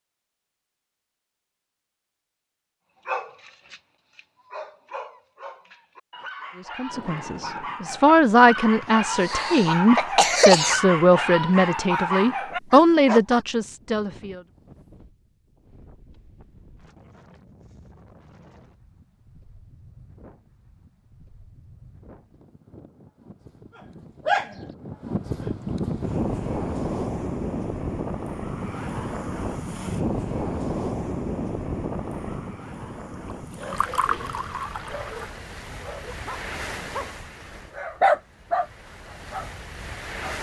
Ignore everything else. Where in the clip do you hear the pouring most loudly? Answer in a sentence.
The loudest moment of the pouring is at 34 seconds.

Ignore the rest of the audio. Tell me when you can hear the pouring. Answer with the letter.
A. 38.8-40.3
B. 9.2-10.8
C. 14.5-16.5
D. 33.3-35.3
D.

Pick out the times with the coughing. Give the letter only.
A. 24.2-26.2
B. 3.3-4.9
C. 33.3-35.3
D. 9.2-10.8
D.